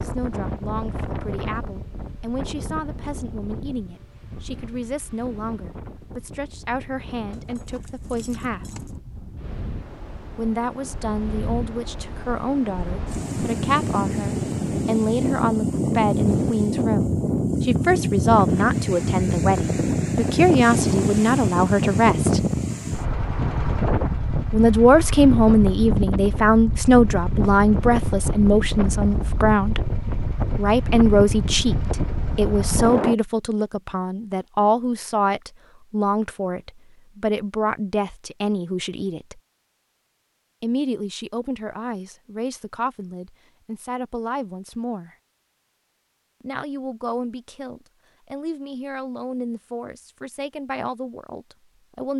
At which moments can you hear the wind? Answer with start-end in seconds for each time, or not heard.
0.0-33.1.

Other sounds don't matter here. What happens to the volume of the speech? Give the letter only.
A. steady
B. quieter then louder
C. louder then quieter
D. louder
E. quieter
C.